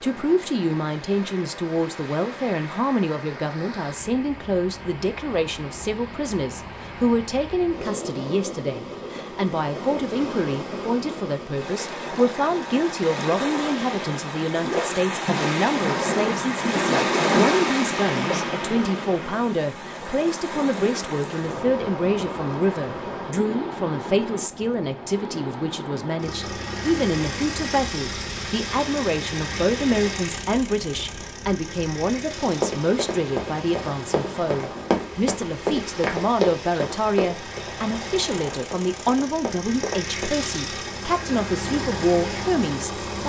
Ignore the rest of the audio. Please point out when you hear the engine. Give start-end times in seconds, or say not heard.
26.1-43.2.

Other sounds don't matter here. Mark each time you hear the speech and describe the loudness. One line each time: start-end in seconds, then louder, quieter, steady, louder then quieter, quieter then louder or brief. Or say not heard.
0.0-43.2 steady.